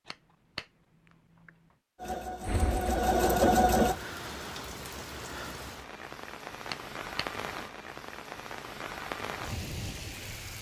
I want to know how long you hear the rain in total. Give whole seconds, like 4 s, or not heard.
8 s.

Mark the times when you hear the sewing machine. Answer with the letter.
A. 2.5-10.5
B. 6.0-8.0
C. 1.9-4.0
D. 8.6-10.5
C.